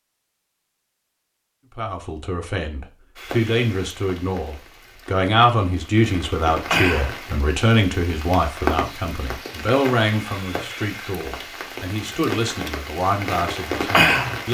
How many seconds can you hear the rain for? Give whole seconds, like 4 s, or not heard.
11 s.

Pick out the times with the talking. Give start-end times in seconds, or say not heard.
1.8-14.4.